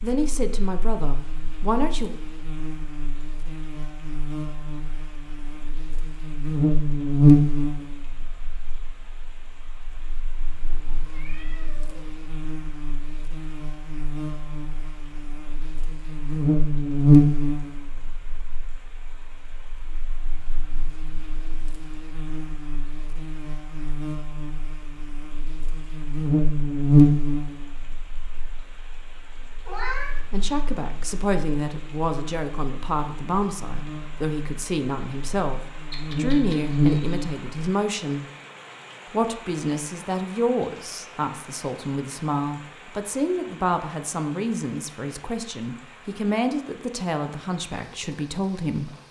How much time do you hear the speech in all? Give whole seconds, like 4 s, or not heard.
20 s.